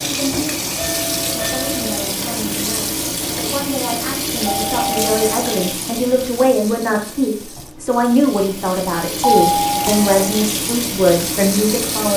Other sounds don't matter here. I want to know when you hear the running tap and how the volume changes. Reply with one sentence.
The running tap can be heard from 0.0 to 12.1 s, getting quieter then louder.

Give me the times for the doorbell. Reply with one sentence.
You can hear the doorbell from 0.8 to 2.0 s, from 4.5 to 5.8 s and from 9.2 to 10.2 s.